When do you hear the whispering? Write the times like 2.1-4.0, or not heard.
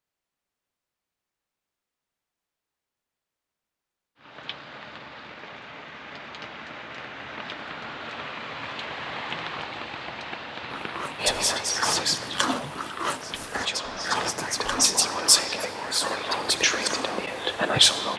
11.2-18.1.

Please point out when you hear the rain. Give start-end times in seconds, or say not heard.
4.2-18.1.